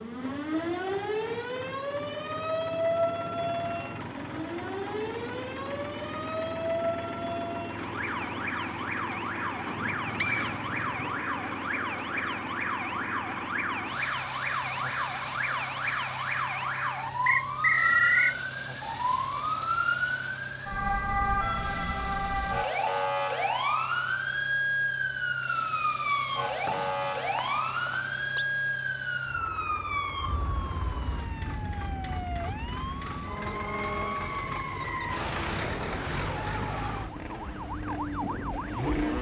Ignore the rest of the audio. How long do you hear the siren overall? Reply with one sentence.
You can hear the siren for 39 seconds altogether.